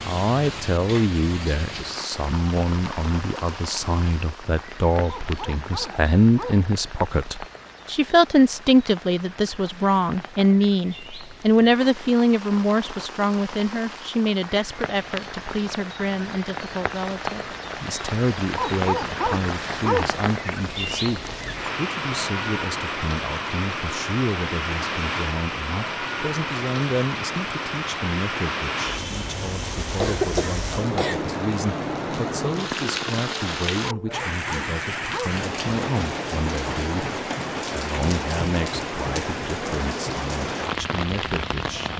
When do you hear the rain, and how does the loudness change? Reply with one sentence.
You can hear the rain from 0.0 to 41.9 s, getting louder.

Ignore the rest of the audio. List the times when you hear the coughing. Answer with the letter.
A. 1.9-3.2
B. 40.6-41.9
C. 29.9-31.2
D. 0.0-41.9
C.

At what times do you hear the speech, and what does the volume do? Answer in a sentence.
You can hear the speech from 0.0 to 41.9 s, getting quieter.